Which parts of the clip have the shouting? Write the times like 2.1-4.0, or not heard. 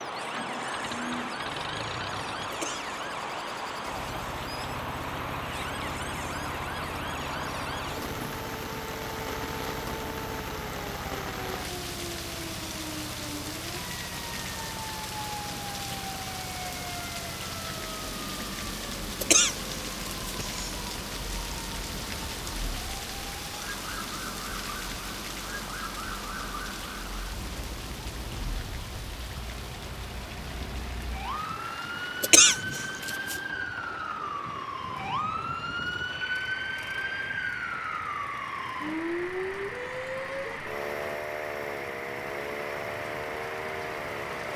not heard.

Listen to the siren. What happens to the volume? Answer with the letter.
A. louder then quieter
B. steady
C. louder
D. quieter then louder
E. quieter
C.